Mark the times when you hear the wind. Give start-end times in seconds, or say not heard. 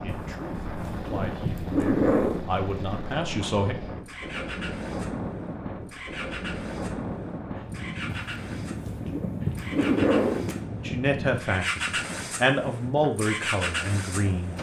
0.0-14.5.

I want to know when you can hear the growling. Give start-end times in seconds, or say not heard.
0.1-2.5, 8.1-10.6.